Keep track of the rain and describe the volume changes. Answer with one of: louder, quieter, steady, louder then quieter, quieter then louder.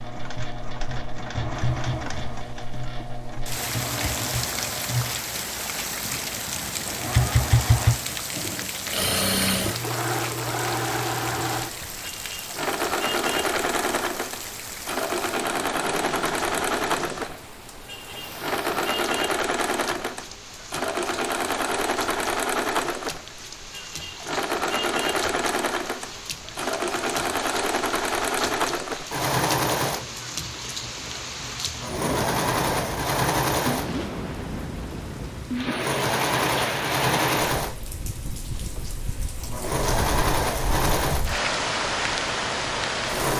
quieter then louder.